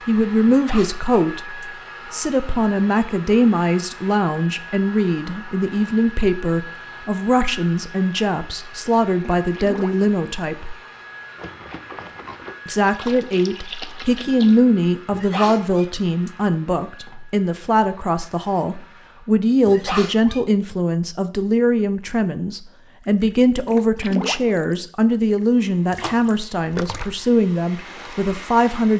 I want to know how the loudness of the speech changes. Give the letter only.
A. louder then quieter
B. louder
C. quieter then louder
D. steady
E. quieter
D.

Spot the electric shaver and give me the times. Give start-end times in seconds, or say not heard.
not heard.